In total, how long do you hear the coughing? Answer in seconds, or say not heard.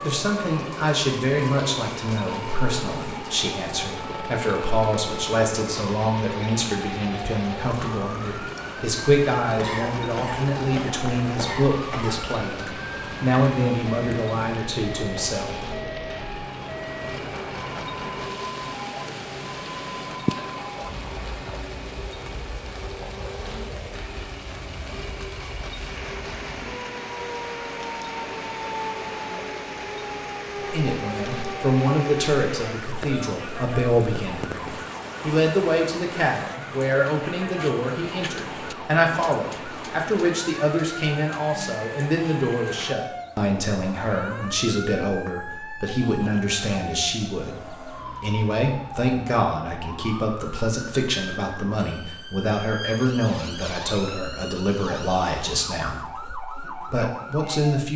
3 s.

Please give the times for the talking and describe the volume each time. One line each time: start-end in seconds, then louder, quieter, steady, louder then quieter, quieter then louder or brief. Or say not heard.
0.0-15.6 steady
30.6-57.9 steady.